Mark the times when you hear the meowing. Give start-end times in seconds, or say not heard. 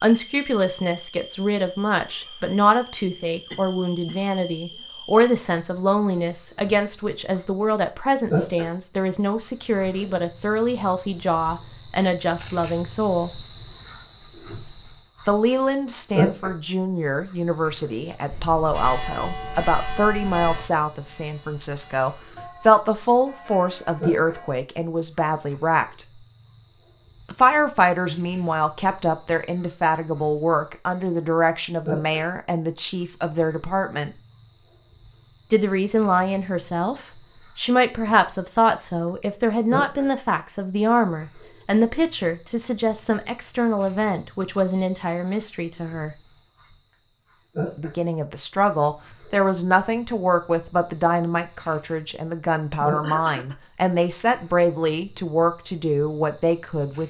not heard.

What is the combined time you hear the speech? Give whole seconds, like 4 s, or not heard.
50 s.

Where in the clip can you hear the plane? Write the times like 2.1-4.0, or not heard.
not heard.